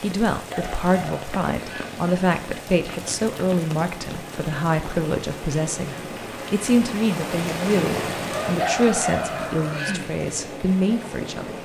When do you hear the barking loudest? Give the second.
9 s.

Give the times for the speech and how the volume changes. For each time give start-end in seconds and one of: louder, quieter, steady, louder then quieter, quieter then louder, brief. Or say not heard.
0.0-11.6 steady.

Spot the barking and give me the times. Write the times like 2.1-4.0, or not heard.
0.3-1.9, 8.4-10.1.